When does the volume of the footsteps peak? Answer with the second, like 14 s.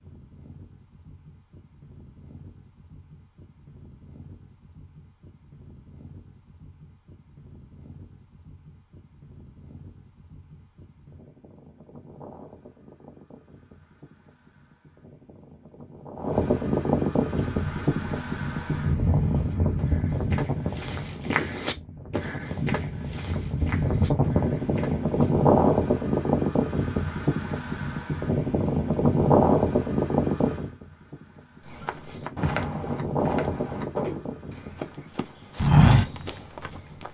36 s.